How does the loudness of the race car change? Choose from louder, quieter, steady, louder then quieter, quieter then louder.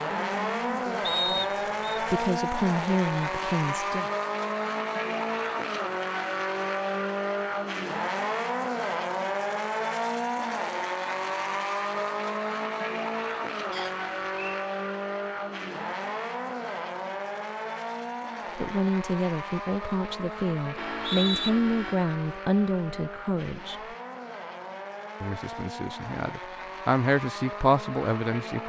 quieter.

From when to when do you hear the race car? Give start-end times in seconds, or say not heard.
0.0-28.6.